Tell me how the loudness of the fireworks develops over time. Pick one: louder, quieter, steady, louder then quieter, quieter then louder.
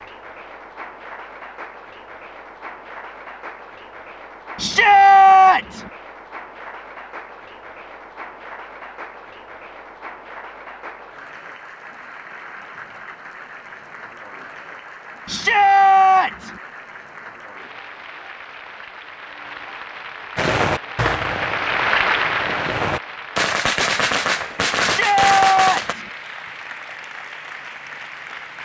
quieter then louder.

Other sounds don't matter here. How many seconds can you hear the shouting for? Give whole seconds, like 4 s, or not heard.
4 s.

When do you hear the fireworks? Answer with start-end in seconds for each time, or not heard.
20.4-25.9.